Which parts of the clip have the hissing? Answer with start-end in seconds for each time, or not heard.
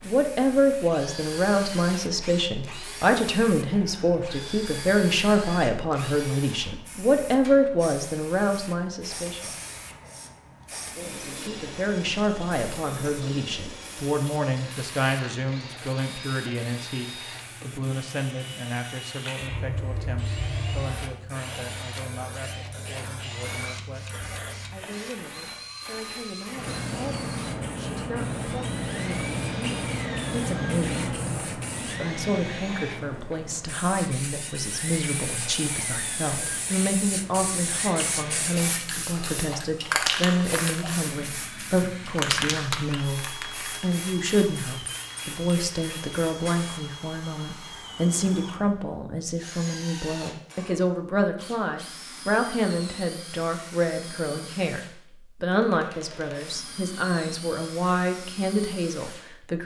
0.0-46.8.